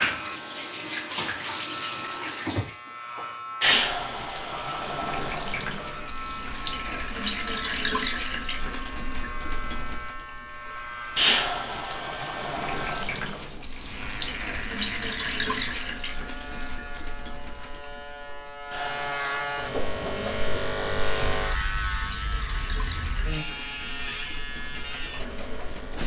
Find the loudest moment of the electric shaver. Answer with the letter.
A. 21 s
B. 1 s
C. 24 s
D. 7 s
A.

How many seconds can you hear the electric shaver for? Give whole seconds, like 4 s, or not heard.
26 s.